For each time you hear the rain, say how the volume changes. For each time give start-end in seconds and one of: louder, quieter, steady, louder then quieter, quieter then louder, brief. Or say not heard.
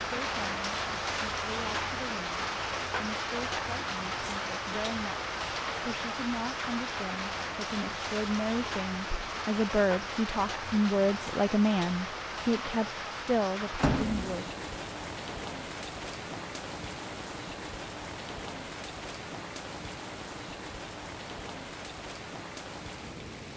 0.0-23.5 quieter.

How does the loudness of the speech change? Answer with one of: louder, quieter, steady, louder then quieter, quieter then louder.
louder.